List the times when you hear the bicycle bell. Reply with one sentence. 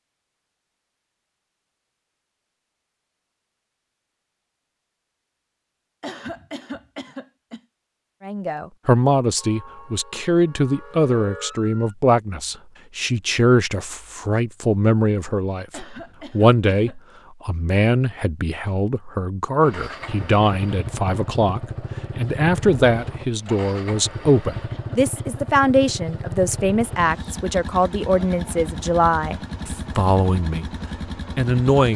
The bicycle bell can't be heard in this clip.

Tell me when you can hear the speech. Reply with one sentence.
The speech can be heard from 8.2 to 30.7 s and from 31.4 to 31.9 s.